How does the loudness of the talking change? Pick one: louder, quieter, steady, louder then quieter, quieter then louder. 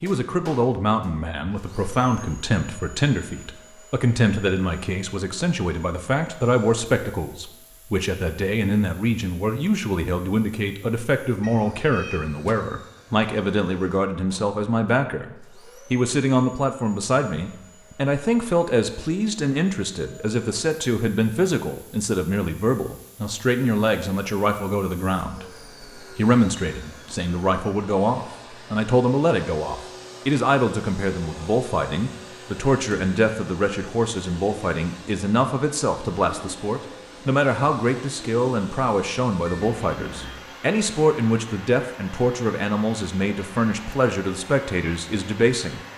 steady.